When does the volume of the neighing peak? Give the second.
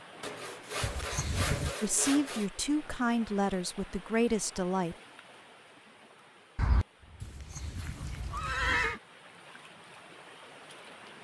9 s.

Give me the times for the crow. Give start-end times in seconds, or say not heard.
not heard.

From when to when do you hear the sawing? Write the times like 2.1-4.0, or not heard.
0.2-2.5, 6.5-8.9.